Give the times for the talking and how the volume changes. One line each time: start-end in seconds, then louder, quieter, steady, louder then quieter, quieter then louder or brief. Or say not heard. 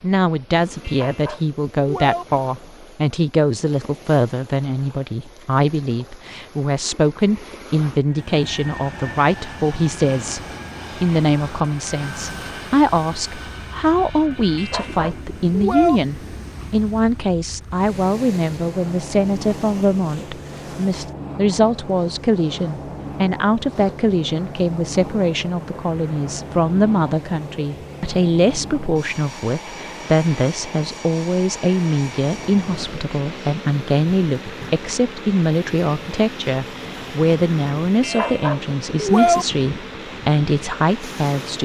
0.0-41.5 steady.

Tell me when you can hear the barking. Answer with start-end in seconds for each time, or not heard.
0.8-2.2, 14.6-16.0, 38.0-39.5.